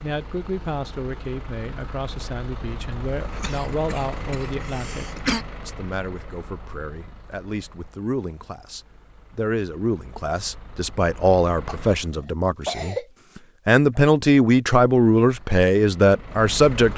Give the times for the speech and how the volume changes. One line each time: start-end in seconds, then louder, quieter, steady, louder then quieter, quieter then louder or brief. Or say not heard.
0.0-16.9 louder.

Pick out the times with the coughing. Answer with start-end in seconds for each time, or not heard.
3.1-5.5, 11.7-13.1.